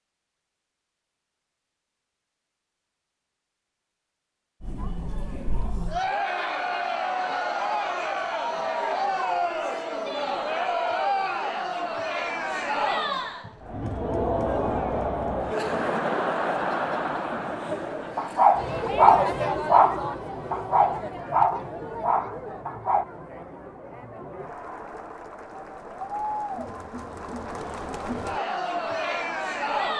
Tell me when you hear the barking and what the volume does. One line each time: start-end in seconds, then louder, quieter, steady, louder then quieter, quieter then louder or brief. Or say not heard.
18.1-23.1 quieter.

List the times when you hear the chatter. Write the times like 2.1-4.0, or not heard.
4.6-29.9.